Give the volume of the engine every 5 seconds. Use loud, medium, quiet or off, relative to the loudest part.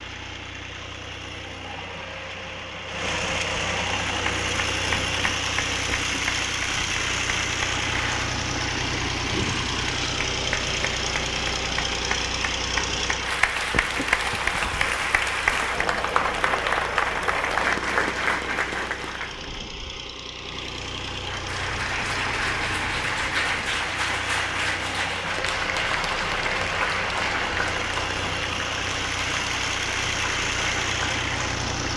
loud, loud, loud, medium, medium, loud, loud.